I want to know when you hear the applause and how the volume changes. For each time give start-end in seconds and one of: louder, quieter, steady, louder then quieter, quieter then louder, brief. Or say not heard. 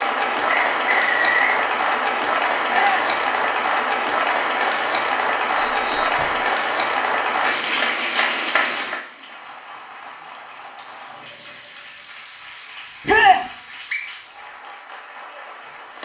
0.0-16.0 quieter.